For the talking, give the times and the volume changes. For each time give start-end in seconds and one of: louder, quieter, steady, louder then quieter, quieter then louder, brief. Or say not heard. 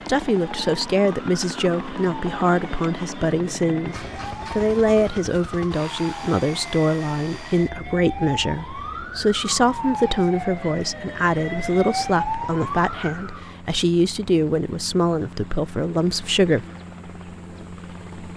0.1-16.6 steady.